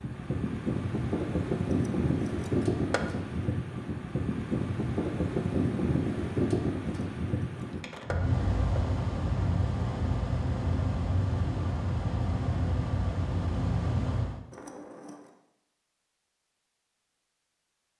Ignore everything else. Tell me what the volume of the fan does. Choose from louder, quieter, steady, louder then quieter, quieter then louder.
steady.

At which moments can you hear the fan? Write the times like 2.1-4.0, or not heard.
0.0-14.4.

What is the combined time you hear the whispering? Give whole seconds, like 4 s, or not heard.
not heard.